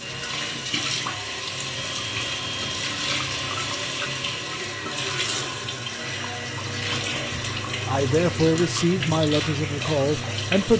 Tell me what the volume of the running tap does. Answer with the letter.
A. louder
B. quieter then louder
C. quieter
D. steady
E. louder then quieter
D.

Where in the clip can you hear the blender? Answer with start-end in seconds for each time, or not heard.
0.0-10.7.